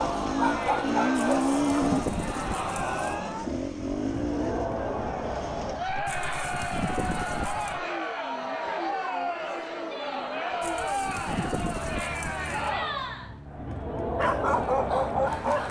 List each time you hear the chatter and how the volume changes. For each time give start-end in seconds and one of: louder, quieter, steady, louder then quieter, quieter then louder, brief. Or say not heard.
0.0-15.6 steady.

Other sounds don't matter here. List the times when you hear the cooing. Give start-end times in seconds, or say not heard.
1.3-3.0, 6.0-7.8, 10.6-12.7.